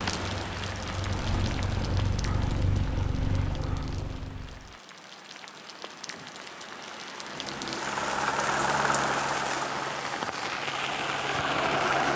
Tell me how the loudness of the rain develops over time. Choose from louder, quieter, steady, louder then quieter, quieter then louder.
quieter then louder.